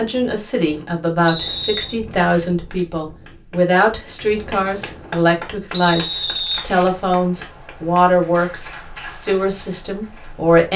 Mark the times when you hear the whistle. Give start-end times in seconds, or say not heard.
1.2-1.9, 5.7-7.2.